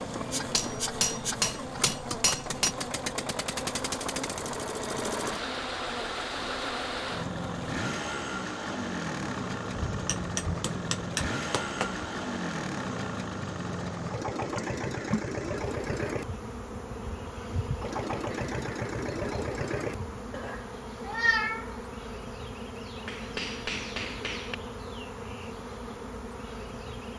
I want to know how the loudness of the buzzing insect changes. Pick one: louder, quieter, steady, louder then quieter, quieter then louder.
steady.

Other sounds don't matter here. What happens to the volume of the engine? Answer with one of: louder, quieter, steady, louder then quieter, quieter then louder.
steady.